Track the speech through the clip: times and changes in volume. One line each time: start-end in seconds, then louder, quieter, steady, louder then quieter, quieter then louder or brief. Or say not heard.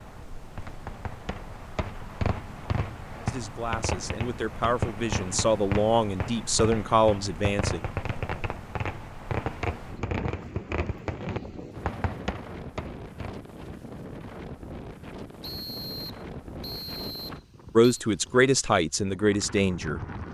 3.2-7.8 louder
17.8-20.0 brief.